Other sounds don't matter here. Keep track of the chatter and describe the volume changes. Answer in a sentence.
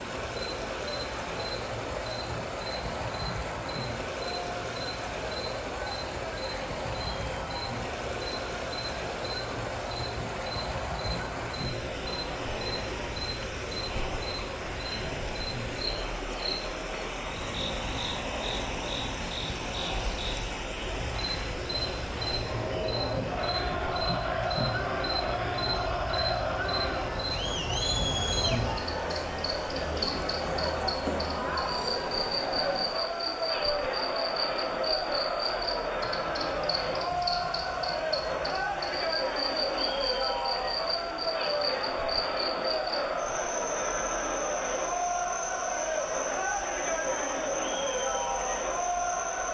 The loudness of the chatter goes up.